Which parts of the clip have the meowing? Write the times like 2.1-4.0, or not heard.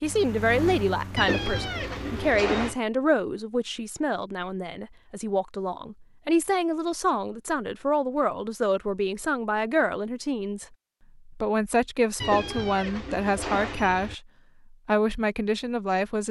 1.1-2.8, 12.2-14.2.